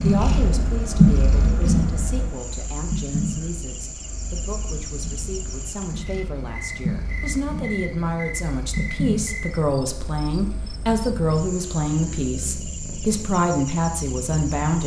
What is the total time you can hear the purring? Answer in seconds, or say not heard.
15 s.